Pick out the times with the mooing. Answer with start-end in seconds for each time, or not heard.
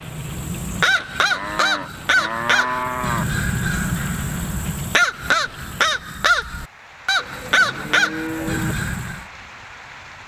1.3-3.2, 7.2-8.8.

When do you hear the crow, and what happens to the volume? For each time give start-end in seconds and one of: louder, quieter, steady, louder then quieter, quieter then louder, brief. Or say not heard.
0.0-9.2 steady.